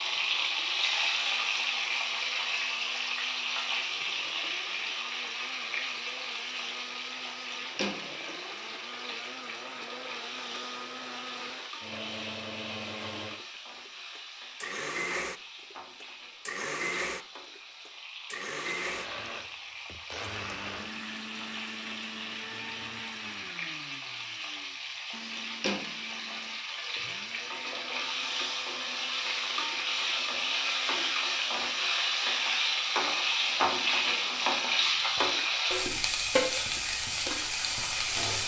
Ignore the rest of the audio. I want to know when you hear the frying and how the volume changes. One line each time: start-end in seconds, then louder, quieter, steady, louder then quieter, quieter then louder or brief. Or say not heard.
0.0-38.4 quieter then louder.